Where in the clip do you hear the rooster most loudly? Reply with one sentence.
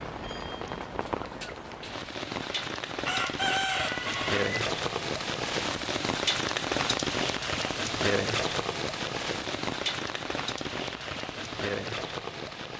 The loudest moment of the rooster is at 4 seconds.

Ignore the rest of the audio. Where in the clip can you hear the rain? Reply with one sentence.
You can hear the rain from 0.0 to 12.7 s.